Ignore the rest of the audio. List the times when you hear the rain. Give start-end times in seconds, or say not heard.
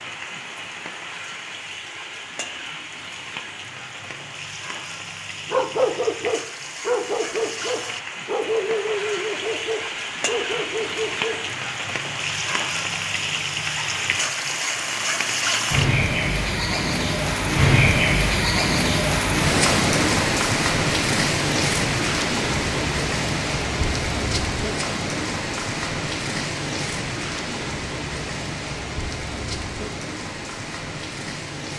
0.0-31.7.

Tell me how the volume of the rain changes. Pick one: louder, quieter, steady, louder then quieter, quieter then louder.
louder then quieter.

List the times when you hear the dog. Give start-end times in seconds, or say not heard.
5.5-11.6.